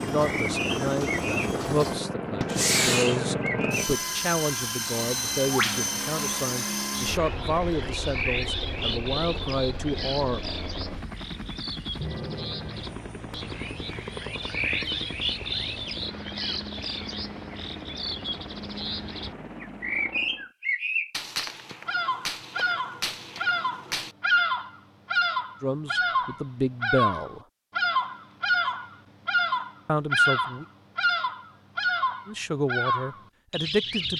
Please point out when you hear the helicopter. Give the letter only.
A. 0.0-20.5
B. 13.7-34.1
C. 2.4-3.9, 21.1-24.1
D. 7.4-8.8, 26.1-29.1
A.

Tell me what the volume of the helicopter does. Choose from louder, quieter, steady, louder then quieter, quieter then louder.
quieter.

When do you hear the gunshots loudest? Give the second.
3 s.